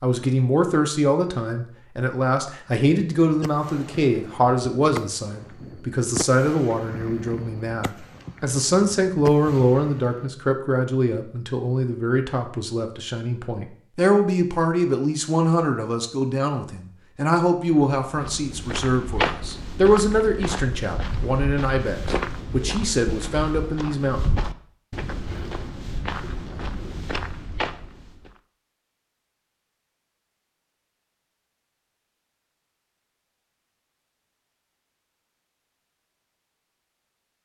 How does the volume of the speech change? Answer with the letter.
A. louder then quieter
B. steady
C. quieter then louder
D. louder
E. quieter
B.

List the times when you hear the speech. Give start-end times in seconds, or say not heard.
0.0-24.3.